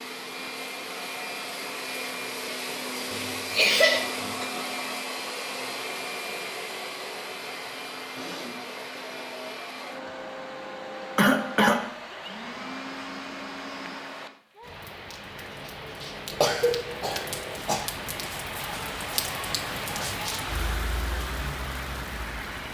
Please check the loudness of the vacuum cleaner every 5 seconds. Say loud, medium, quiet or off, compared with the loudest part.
loud, loud, medium, off, off.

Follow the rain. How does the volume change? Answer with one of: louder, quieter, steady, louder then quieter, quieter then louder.
louder.